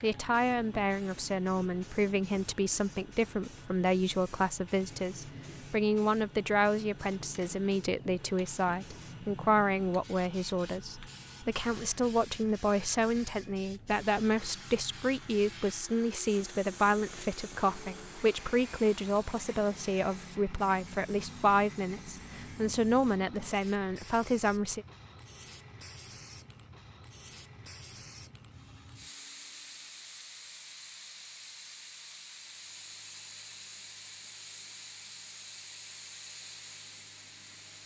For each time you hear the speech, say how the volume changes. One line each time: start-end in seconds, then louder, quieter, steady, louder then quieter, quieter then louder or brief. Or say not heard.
0.0-24.9 steady.